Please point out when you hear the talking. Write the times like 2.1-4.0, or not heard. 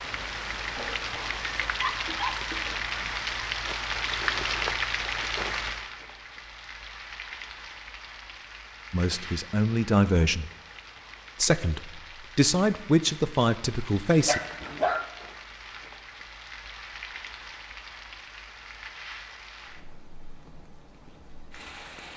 8.9-10.5, 11.3-14.4.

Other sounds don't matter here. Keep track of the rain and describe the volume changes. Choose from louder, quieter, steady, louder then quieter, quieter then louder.
quieter.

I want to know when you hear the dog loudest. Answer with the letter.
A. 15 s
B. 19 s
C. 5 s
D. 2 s
A.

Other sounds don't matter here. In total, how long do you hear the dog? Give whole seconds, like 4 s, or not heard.
3 s.